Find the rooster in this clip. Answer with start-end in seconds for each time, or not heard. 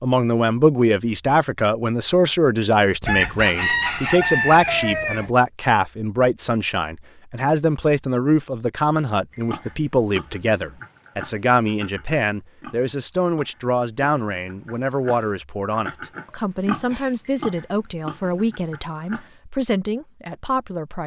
3.0-5.3.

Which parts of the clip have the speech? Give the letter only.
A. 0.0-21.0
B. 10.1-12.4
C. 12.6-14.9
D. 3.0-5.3
A.